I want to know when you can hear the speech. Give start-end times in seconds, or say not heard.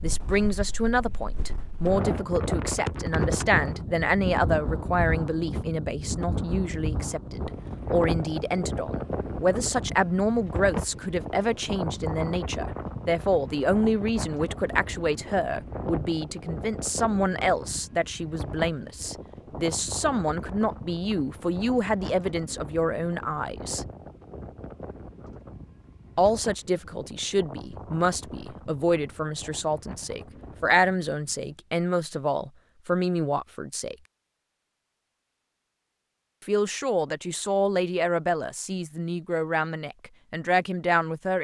0.0-23.9, 26.1-34.0, 36.5-41.3.